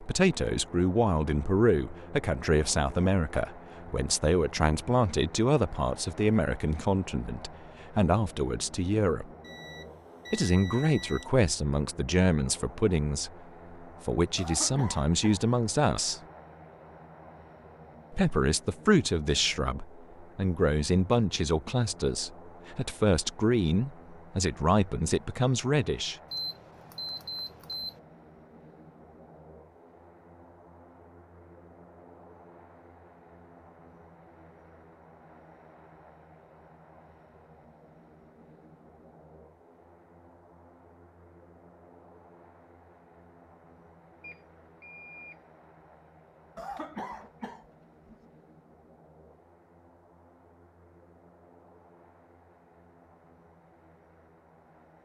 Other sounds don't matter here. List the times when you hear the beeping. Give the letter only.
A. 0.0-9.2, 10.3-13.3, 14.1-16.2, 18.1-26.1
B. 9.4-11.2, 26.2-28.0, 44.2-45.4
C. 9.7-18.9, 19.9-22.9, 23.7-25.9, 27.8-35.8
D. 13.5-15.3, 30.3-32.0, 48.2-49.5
B.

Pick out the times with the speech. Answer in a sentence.
You can hear the speech from 0.0 to 9.2 s, from 10.3 to 13.3 s, from 14.1 to 16.2 s and from 18.1 to 26.1 s.